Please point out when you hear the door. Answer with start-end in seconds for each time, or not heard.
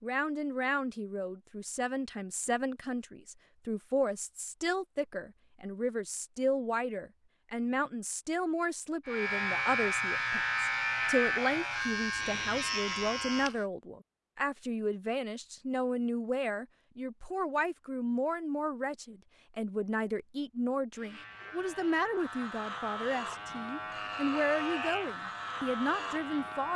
not heard.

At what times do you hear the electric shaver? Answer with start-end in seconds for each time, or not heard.
9.1-13.7, 20.9-26.7.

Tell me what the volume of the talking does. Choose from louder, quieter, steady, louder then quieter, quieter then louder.
steady.